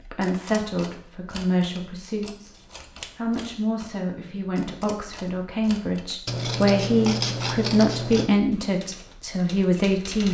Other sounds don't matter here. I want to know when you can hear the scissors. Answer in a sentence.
The scissors can be heard from 2.5 to 3.2 s and from 6.2 to 8.3 s.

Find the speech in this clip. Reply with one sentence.
You can hear the speech from 0.1 to 2.5 s and from 3.1 to 10.2 s.